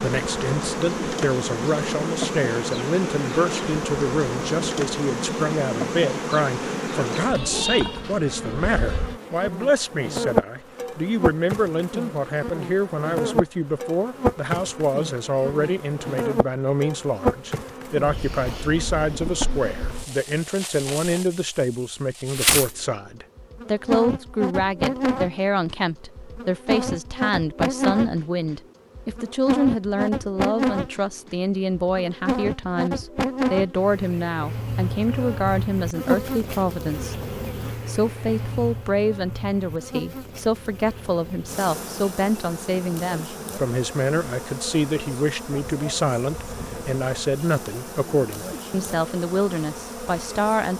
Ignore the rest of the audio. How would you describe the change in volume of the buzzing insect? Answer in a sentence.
The volume of the buzzing insect goes down.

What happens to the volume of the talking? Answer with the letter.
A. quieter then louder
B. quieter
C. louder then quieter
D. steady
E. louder
D.